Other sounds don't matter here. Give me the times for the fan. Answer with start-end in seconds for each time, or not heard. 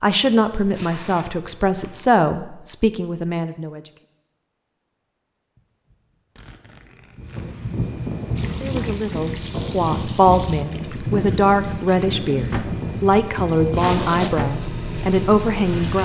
7.2-16.0.